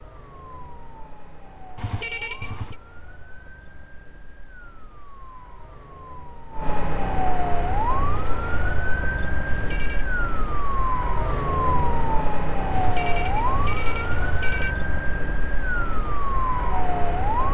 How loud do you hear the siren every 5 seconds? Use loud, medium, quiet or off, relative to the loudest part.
quiet, loud, loud, loud.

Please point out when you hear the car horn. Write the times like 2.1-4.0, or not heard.
1.8-2.8, 9.4-10.1, 12.7-14.8.